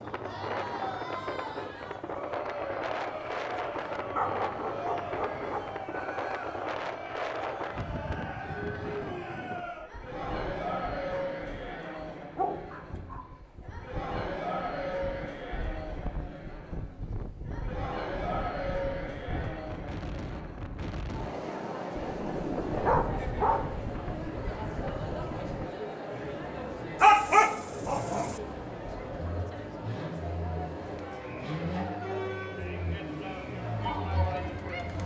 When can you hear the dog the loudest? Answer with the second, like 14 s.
27 s.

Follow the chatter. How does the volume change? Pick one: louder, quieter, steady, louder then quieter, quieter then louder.
steady.